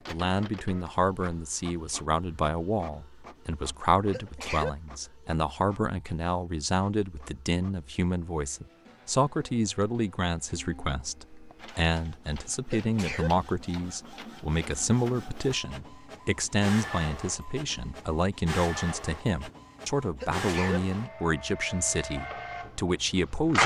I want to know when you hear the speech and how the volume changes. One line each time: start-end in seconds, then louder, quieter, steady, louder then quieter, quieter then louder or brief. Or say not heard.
0.1-23.6 steady.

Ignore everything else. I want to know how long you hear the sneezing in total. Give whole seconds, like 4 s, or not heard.
2 s.